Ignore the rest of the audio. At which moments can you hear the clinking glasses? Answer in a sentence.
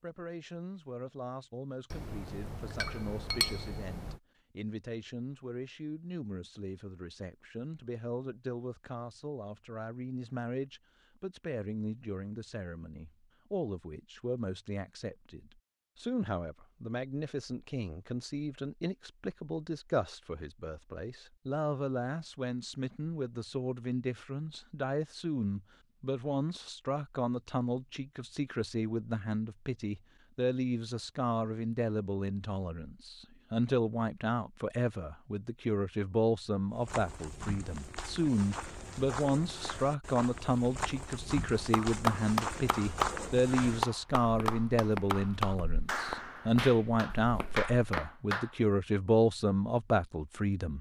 The clinking glasses can be heard from 1.9 to 4.2 s.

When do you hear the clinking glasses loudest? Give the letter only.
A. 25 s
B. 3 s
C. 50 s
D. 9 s
B.